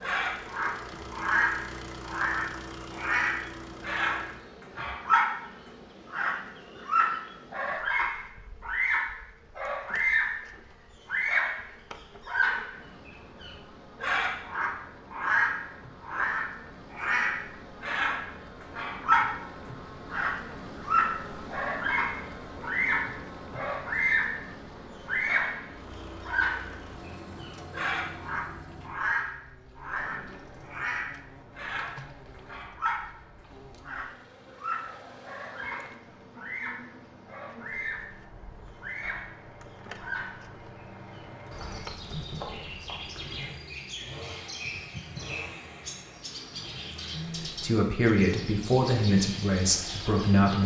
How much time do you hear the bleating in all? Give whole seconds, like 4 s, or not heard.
not heard.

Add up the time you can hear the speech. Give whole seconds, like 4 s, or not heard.
3 s.